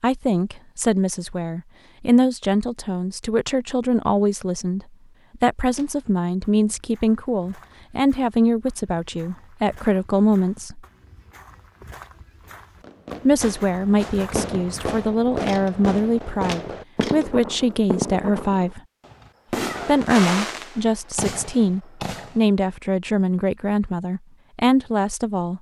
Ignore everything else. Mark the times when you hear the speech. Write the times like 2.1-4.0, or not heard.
0.0-10.8, 13.2-18.8, 19.9-25.5.